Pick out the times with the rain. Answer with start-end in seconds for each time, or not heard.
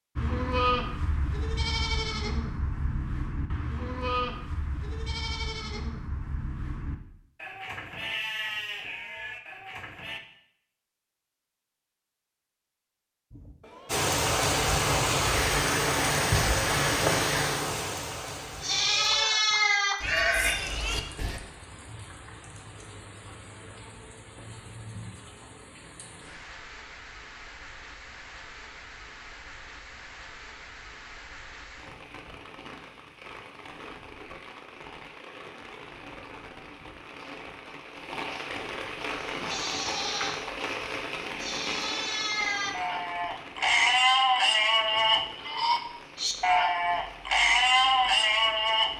13.8-48.9.